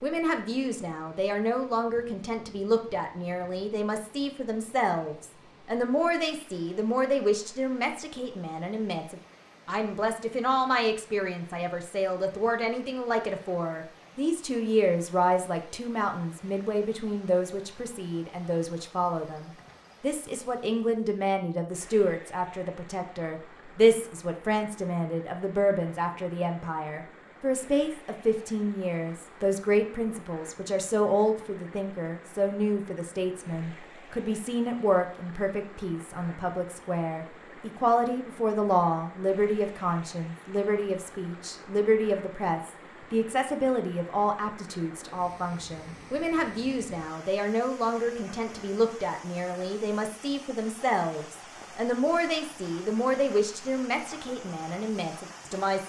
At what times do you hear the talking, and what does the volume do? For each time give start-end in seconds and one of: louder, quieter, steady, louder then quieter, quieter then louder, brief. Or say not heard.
0.0-55.8 steady.